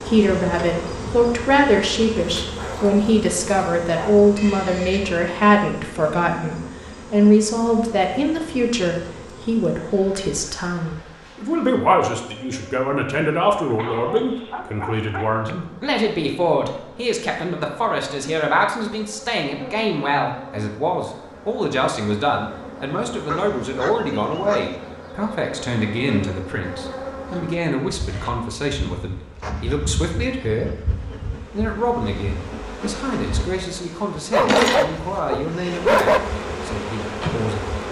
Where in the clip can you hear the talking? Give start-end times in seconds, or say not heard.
0.0-37.8.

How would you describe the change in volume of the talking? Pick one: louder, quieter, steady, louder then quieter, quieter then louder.
quieter.